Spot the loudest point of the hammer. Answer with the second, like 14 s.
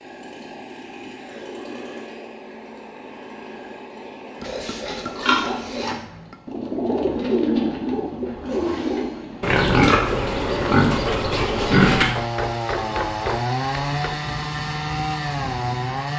13 s.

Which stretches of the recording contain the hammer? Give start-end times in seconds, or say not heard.
4.3-6.3, 12.2-14.2.